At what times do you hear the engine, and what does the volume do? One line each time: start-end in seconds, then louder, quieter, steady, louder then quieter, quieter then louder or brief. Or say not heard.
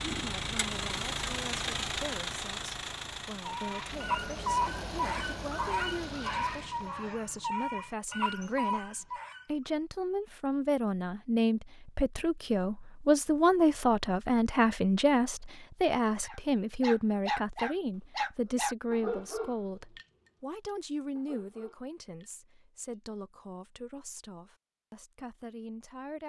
0.0-7.0 quieter.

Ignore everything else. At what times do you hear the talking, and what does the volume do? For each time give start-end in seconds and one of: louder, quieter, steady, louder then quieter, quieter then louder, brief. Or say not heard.
0.1-26.2 louder then quieter.